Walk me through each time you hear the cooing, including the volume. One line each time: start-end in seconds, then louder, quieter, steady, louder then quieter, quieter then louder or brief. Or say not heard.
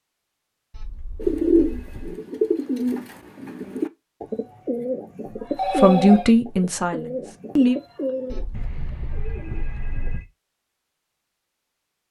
1.1-10.2 quieter.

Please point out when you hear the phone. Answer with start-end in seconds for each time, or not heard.
0.7-2.2, 5.5-6.3, 8.3-10.2.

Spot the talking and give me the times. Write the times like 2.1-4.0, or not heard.
5.7-7.8.